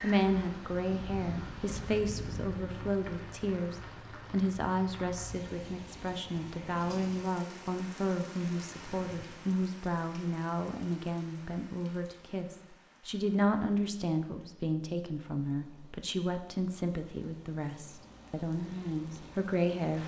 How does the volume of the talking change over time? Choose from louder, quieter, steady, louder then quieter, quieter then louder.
steady.